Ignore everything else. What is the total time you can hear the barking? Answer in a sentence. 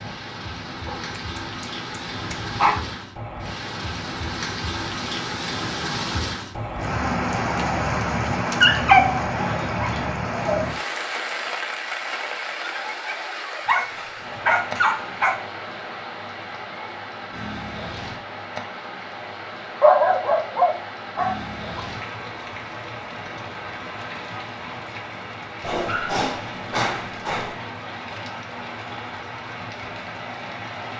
You can hear the barking for 10 seconds altogether.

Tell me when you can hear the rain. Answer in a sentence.
You can hear the rain from 0.0 to 30.9 s.